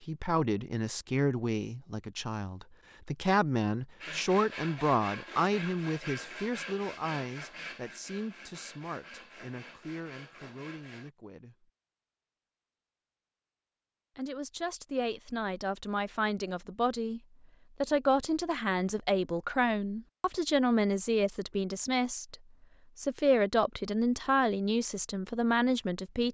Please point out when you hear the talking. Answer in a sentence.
The talking can be heard from 0.1 to 11.7 s, from 14.2 to 17.2 s, from 17.8 to 22.4 s and from 22.9 to 26.3 s.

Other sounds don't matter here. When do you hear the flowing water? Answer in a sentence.
You can't hear the flowing water here.